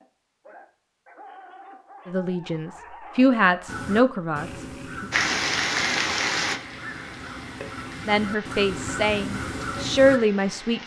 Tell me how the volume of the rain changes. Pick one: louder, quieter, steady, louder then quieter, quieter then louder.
quieter.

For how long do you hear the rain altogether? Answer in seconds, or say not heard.
6 s.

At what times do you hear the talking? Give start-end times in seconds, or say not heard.
2.0-5.0, 8.1-10.8.